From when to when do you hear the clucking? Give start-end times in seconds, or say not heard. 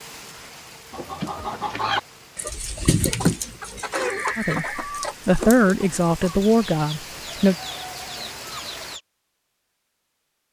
0.9-9.0.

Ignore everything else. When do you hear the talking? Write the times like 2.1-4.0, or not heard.
4.3-7.5.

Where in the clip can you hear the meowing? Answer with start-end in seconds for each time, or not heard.
not heard.